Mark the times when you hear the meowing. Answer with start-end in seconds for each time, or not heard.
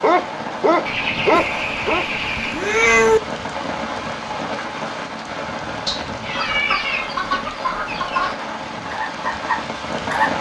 1.4-3.2, 5.8-7.1.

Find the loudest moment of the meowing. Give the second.
3 s.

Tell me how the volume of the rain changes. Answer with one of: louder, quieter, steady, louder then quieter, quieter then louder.
steady.